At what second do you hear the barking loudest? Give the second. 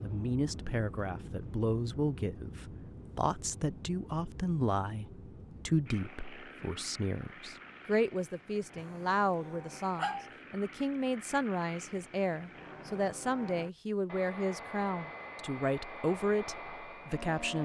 10 s.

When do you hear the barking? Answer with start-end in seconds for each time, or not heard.
8.8-10.3.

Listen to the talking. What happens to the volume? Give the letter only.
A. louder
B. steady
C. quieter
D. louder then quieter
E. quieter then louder
B.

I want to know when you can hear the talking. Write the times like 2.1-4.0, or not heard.
0.0-17.6.